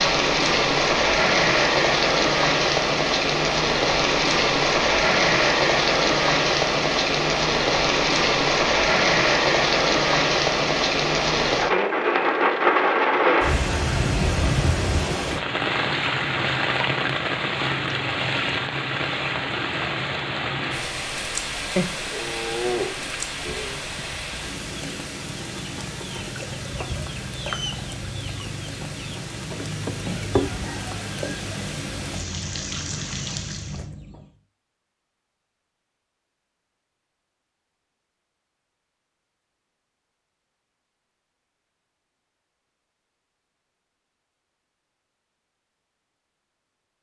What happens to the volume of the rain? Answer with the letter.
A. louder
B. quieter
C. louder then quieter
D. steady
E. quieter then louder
B.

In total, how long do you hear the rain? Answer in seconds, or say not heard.
34 s.